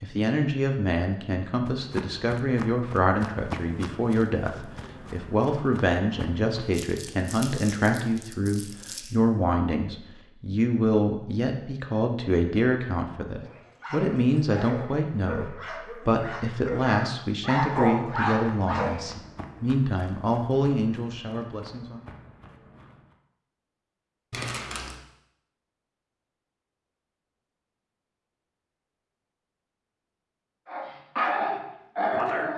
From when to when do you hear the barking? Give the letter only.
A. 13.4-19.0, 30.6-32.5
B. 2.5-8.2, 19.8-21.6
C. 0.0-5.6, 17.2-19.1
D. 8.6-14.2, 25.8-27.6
A.